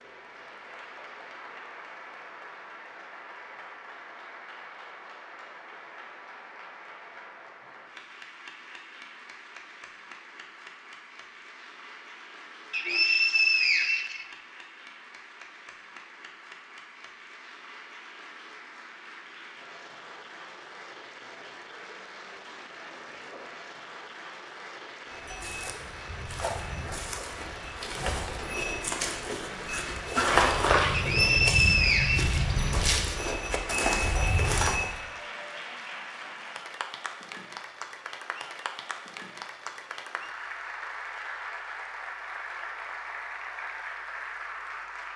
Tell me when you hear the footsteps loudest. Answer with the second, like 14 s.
30 s.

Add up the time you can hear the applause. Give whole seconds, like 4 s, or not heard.
45 s.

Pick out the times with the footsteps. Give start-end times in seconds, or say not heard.
25.1-35.0.